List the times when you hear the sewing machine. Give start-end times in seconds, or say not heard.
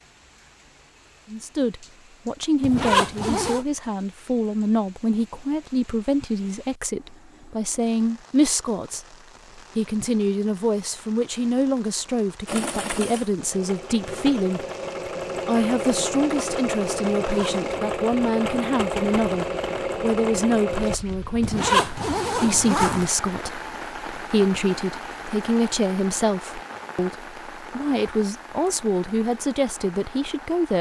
12.4-21.0.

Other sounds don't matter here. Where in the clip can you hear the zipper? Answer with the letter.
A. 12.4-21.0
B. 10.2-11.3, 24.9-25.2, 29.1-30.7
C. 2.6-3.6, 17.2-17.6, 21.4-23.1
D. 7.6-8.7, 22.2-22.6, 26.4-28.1
C.